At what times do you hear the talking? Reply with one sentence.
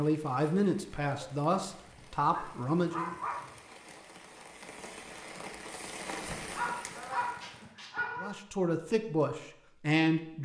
You can hear the talking from 0.0 to 3.1 s and from 8.2 to 10.4 s.